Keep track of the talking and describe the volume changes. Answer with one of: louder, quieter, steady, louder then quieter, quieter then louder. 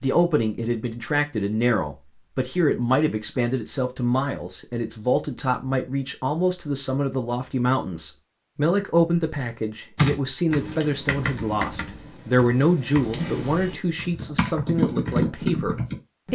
steady.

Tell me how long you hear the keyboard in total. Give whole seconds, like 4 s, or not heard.
6 s.